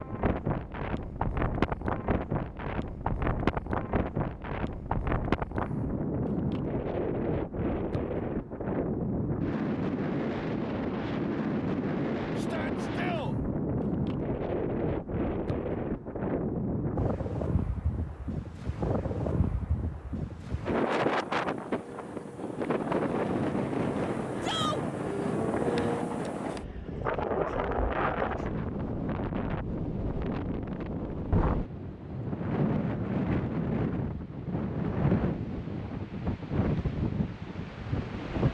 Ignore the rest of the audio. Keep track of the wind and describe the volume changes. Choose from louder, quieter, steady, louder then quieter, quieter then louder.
steady.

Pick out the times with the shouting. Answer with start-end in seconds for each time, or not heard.
12.3-13.3, 24.4-24.9.